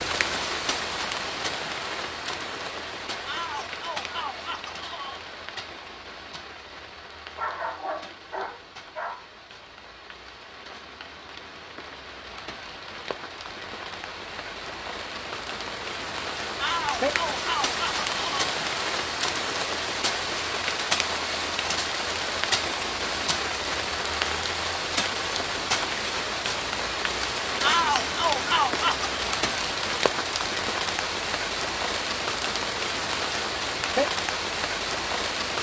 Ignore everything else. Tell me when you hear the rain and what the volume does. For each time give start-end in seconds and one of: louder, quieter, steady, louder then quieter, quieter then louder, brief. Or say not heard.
0.0-35.5 quieter then louder.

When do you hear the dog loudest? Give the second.
8 s.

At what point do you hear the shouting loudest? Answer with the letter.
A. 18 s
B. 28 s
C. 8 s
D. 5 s
B.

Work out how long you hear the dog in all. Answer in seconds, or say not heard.
2 s.